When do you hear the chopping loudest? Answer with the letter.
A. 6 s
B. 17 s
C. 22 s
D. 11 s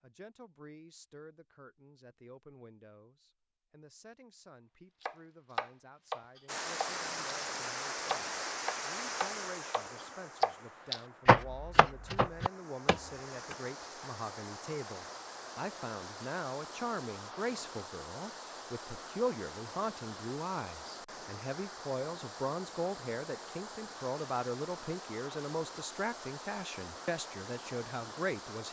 D.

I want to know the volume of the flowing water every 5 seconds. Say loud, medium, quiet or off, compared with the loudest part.
off, loud, medium, medium, medium, medium.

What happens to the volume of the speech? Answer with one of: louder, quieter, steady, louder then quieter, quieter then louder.
louder.